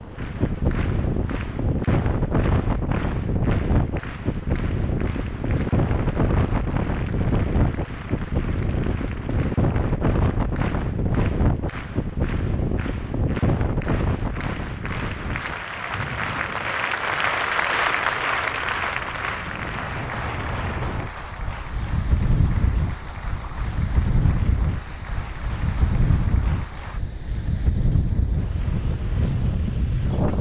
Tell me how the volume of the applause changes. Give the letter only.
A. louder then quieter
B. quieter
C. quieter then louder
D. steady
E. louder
A.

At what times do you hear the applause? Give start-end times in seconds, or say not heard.
0.0-27.0.